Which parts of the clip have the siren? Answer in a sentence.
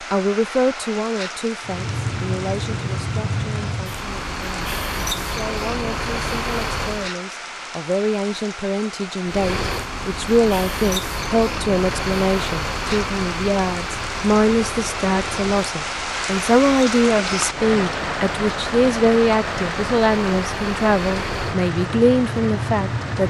You can't hear the siren here.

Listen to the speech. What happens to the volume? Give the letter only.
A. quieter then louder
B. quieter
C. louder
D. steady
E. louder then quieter
C.